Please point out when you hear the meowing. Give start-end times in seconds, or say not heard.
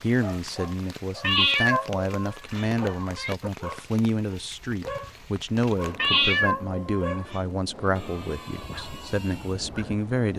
1.2-3.4, 6.0-7.4.